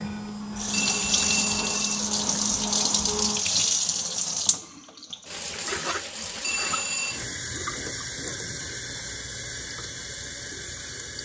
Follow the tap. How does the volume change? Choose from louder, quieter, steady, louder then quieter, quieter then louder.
quieter.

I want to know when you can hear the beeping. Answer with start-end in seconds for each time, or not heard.
0.7-2.0, 6.4-7.2.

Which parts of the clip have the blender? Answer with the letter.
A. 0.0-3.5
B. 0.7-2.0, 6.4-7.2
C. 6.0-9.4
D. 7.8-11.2
A.